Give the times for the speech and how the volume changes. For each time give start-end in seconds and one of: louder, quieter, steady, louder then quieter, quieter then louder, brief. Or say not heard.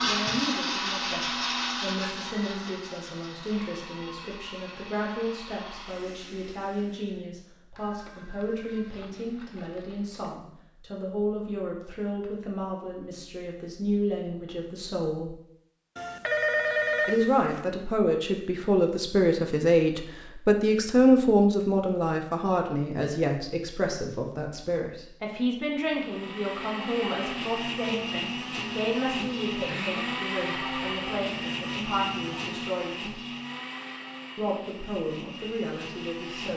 0.0-15.3 steady
17.1-33.2 quieter
34.4-36.5 brief.